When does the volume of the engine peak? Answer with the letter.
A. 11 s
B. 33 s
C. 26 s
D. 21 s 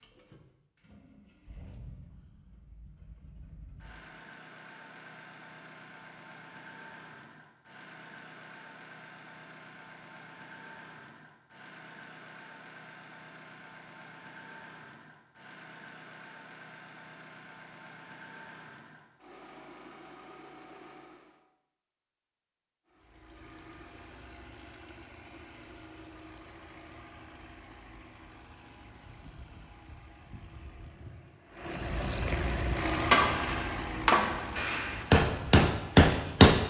B.